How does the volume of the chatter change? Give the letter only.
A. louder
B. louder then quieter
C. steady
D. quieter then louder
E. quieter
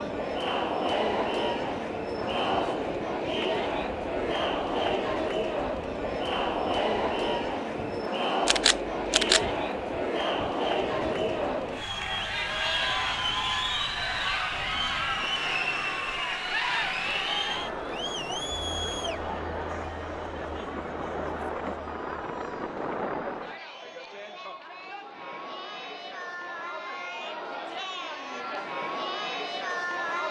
E.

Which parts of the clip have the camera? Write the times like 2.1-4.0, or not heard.
8.4-9.4.